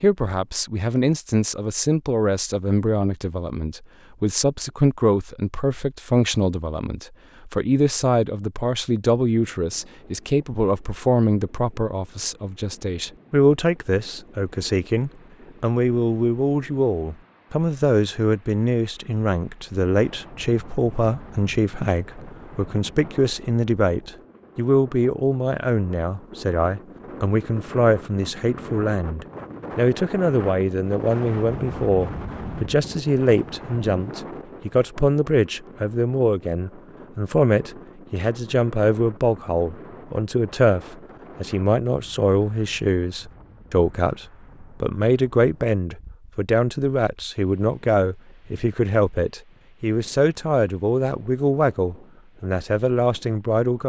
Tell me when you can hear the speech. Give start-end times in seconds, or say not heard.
0.0-53.8.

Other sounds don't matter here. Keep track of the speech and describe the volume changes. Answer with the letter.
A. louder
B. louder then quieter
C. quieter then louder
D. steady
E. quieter
D.